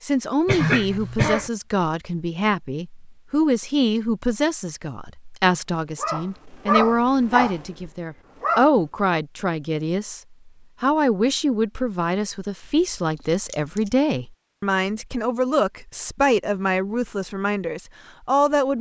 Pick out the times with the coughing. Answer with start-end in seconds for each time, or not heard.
0.5-1.5.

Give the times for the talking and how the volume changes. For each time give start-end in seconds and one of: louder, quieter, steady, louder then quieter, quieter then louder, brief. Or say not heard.
0.0-18.7 steady.